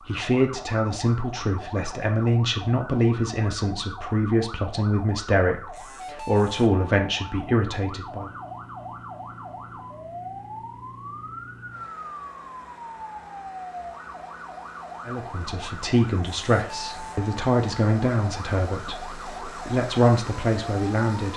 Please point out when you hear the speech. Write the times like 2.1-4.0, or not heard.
0.1-8.3, 15.1-21.3.